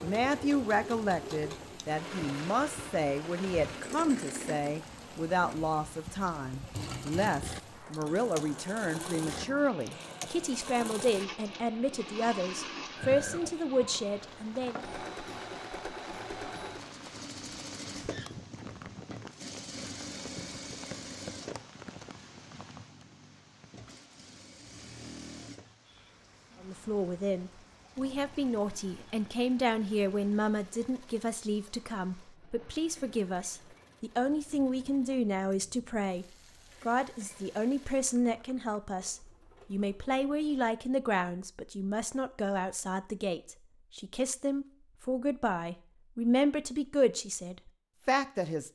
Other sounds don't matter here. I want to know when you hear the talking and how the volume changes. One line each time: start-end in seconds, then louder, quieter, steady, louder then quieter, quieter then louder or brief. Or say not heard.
0.0-14.8 steady
26.6-48.6 steady.